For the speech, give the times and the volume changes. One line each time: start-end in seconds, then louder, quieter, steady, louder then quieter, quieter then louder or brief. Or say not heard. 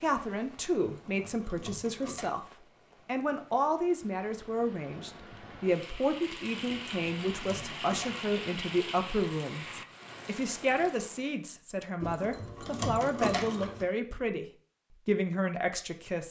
0.0-16.2 steady.